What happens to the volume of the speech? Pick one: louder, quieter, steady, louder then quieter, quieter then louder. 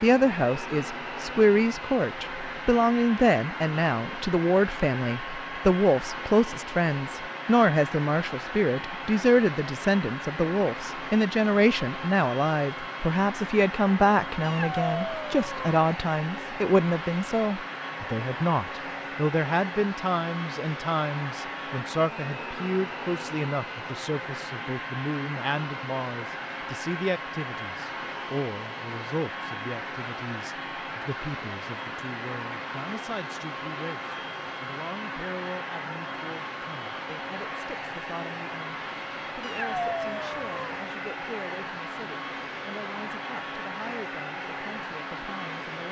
quieter.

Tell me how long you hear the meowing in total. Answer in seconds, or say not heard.
3 s.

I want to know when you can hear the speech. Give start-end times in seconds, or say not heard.
0.0-45.8.